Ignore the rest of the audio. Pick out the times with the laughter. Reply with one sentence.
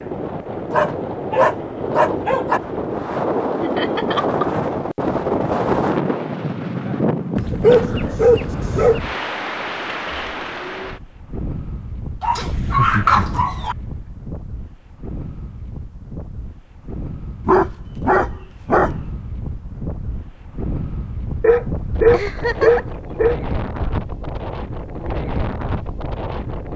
The laughter can be heard from 3.6 to 4.8 s, from 12.4 to 14.1 s and from 22.1 to 23.0 s.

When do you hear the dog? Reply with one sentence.
You can hear the dog from 0.7 to 2.6 s, from 7.3 to 9.1 s, from 12.2 to 13.8 s, from 17.4 to 18.9 s and from 21.4 to 23.4 s.